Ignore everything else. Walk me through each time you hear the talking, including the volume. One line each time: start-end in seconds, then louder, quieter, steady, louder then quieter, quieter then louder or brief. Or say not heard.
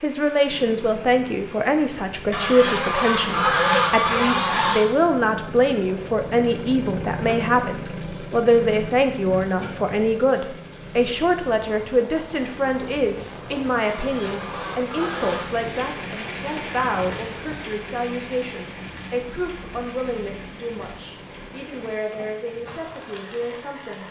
0.0-24.0 quieter.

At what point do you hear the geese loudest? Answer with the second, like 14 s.
4 s.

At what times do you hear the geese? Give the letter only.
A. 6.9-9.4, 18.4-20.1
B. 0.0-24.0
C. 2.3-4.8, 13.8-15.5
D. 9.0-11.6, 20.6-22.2
C.